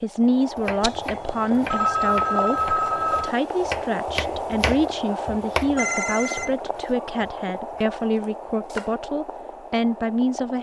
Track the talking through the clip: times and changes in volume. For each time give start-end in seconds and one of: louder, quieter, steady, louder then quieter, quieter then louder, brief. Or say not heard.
0.0-10.5 steady.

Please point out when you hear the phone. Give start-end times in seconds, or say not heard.
0.8-3.3, 5.8-6.6.